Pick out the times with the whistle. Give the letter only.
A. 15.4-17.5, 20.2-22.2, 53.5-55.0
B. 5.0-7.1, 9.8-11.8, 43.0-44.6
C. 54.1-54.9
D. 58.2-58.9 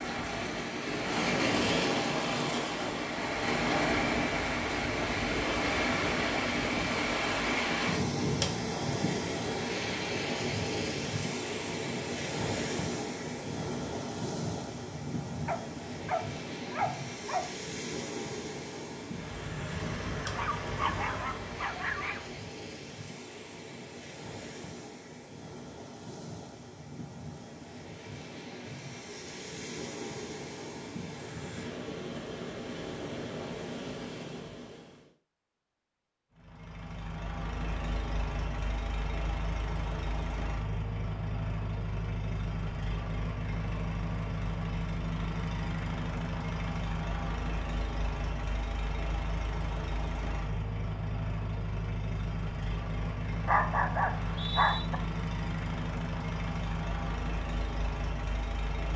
C.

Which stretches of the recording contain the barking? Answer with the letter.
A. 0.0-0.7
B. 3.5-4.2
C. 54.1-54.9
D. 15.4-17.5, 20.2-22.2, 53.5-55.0
D.